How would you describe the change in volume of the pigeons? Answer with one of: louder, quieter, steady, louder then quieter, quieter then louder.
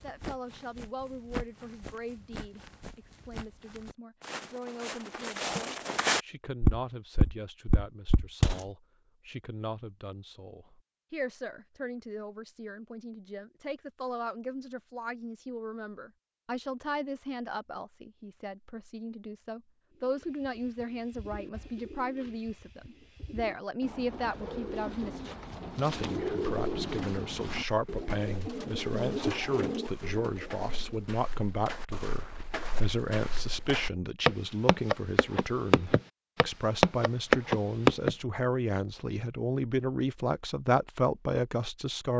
louder.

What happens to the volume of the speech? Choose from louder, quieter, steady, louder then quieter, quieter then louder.
louder.